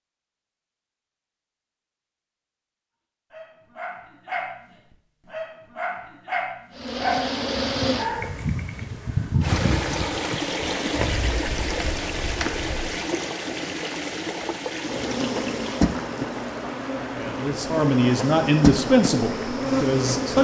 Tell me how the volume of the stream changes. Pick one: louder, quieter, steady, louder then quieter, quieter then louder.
quieter.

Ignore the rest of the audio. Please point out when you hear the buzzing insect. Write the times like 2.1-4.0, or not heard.
6.8-13.1, 14.8-20.4.